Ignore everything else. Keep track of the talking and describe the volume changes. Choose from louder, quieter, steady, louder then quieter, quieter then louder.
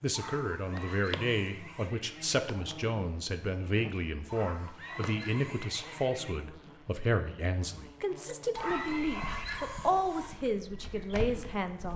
steady.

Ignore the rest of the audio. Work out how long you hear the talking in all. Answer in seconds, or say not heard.
12 s.